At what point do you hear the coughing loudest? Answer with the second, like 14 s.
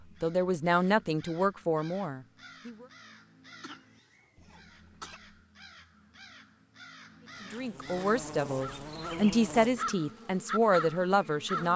5 s.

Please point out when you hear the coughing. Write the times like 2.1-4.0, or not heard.
3.6-5.2.